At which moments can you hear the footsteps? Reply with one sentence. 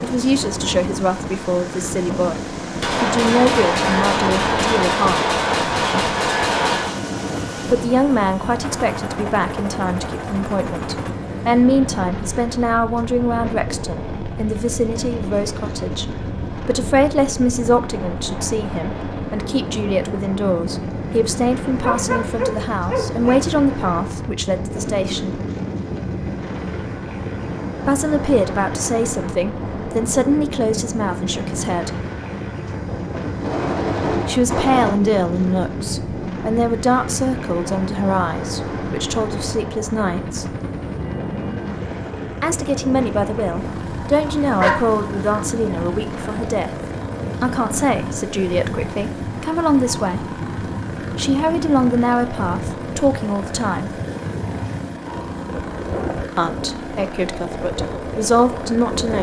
You can't hear the footsteps here.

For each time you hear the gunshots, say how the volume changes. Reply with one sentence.
The gunshots can be heard from 2.8 to 7.0 s, at a steady volume; and briefly from 33.4 to 35.0 s.